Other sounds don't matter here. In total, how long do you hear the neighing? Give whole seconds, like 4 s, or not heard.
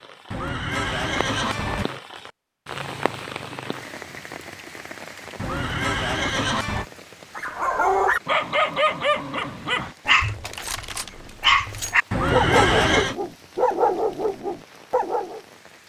4 s.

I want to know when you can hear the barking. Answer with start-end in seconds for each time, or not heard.
7.3-15.4.